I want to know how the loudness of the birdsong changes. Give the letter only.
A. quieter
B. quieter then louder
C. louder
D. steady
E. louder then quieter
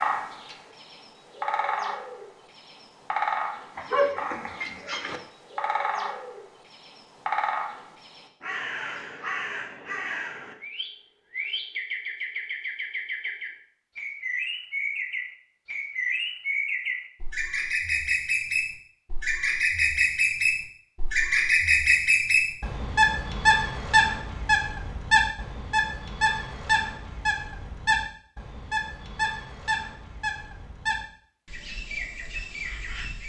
E.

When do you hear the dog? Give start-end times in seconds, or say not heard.
3.8-5.2.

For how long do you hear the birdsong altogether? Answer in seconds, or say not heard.
33 s.